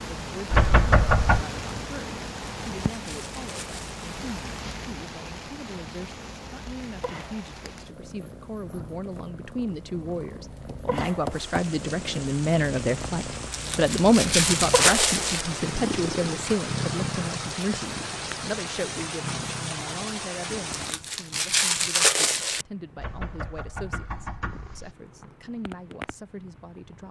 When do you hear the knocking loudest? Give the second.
1 s.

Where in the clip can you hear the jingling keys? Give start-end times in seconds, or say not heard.
not heard.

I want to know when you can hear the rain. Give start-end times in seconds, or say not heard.
0.0-20.9.